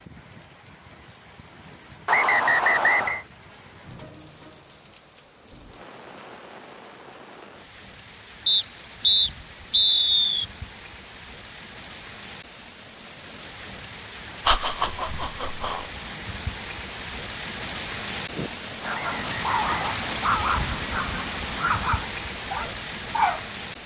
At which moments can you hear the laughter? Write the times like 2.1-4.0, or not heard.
14.4-15.9.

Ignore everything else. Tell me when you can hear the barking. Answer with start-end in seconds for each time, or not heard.
18.3-23.4.